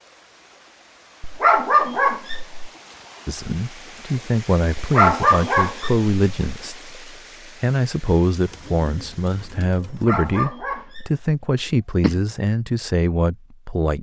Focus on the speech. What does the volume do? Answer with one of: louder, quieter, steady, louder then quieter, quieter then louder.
steady.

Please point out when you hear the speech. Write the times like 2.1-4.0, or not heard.
3.2-13.9.